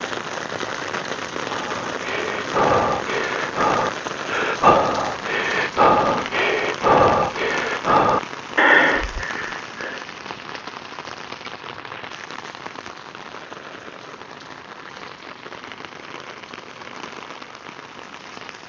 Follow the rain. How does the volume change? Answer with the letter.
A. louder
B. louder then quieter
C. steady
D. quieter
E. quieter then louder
D.